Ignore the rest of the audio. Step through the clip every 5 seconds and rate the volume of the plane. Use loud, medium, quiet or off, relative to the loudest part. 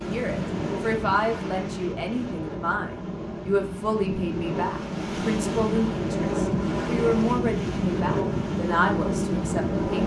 medium, loud.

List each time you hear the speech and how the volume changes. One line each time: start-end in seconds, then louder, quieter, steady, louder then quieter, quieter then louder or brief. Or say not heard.
0.1-10.0 steady.